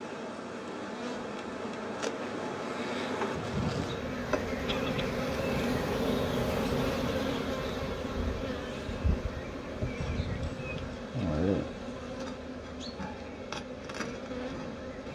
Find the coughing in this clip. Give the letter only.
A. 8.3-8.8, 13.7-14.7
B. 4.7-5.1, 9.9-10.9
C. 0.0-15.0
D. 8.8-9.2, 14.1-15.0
B.